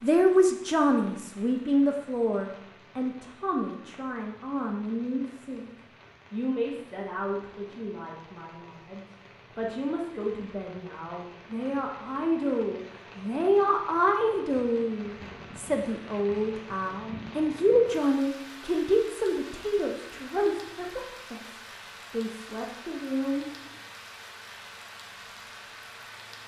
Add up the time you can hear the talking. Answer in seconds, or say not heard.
23 s.